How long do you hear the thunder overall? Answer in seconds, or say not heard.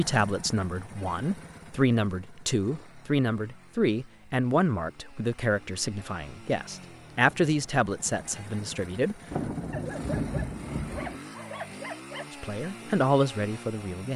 2 s.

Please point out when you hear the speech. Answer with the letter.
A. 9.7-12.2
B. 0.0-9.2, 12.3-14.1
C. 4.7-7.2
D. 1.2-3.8
B.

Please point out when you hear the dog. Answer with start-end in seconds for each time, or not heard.
9.7-12.2.